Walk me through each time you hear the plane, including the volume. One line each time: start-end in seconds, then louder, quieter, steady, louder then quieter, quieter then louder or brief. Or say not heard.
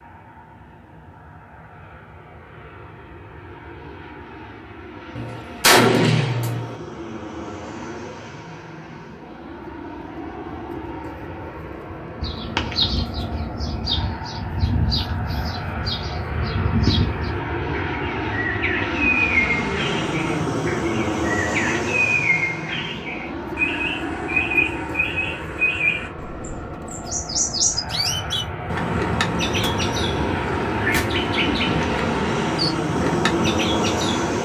0.0-34.4 louder.